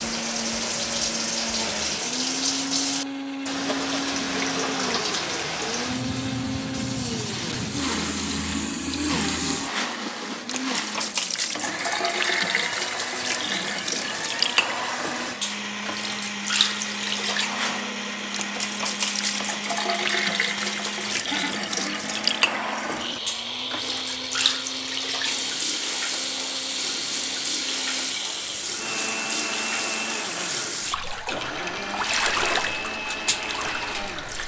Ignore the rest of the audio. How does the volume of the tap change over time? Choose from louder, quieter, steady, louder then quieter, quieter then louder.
steady.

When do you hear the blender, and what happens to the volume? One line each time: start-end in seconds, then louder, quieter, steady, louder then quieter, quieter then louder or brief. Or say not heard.
0.0-34.4 steady.